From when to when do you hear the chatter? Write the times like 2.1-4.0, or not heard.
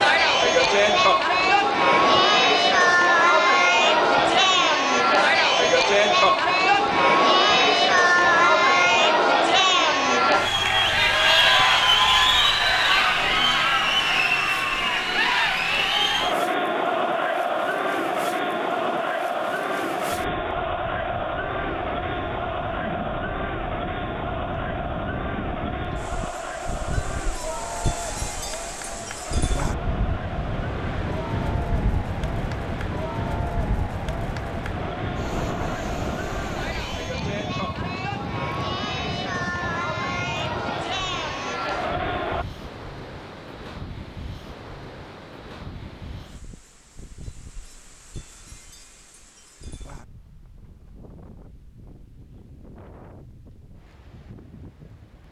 0.0-42.5.